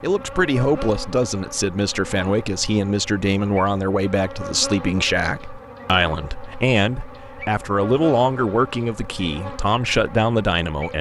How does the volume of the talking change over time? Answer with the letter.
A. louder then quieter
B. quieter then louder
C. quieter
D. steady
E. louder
D.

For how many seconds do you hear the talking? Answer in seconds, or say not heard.
11 s.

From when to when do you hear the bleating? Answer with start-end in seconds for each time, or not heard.
not heard.